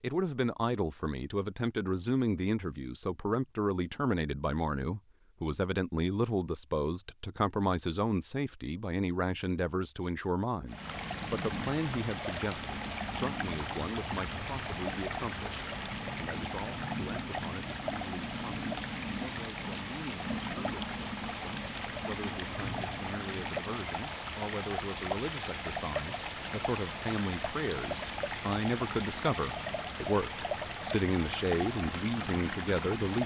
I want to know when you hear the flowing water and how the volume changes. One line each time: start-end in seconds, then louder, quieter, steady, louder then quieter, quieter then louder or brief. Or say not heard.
10.7-33.2 steady.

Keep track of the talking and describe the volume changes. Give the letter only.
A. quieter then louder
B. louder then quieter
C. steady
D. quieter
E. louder
A.